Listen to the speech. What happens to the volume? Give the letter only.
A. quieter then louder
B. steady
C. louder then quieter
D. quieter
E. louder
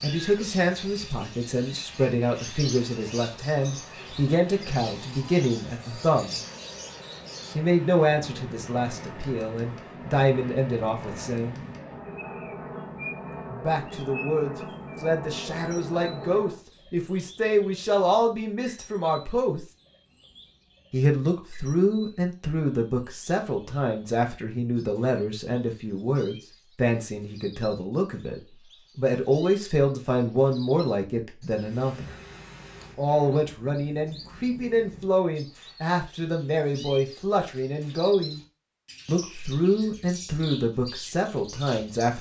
B.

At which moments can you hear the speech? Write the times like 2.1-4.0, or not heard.
0.0-6.4, 7.5-11.6, 13.5-19.6, 20.9-32.1, 33.0-38.4, 39.0-42.1.